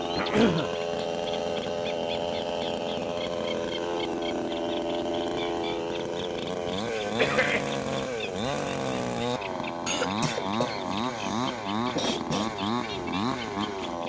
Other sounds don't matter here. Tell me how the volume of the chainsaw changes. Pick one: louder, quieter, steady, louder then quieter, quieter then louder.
steady.